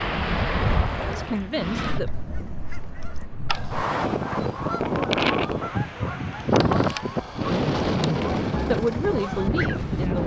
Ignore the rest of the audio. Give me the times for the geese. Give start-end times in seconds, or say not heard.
1.0-9.8.